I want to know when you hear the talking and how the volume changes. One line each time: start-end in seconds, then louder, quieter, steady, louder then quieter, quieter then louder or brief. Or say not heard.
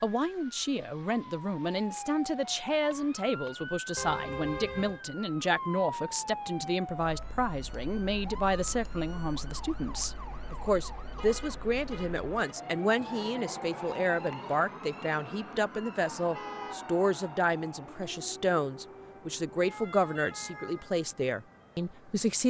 0.0-22.4 steady.